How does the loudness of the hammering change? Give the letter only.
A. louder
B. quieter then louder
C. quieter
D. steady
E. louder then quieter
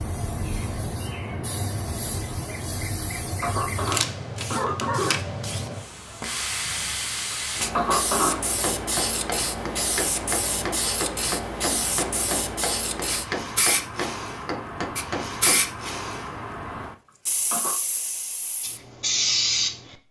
D.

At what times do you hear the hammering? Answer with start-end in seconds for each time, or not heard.
8.6-15.7.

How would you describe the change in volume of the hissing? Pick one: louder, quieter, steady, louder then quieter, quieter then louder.
steady.